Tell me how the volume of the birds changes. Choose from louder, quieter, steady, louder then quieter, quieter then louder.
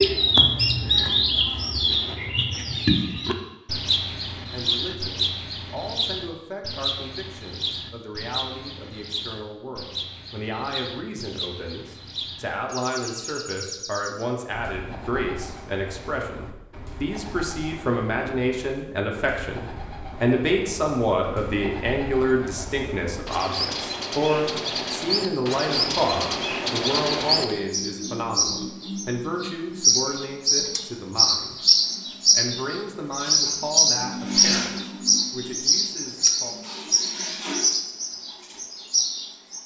quieter then louder.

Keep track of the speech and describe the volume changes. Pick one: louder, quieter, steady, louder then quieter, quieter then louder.
louder then quieter.